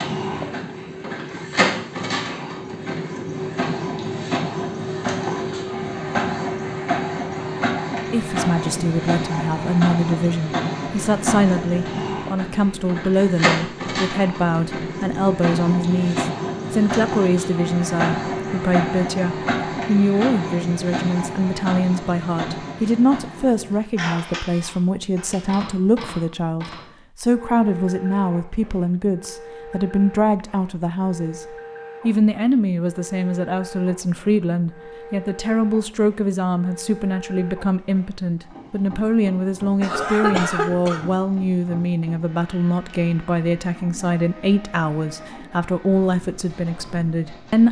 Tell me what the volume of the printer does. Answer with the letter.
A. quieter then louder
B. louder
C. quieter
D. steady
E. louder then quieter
C.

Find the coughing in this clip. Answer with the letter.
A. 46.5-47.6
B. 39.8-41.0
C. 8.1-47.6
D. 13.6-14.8
B.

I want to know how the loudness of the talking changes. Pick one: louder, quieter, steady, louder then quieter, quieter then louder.
steady.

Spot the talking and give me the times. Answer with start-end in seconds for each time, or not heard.
8.1-47.6.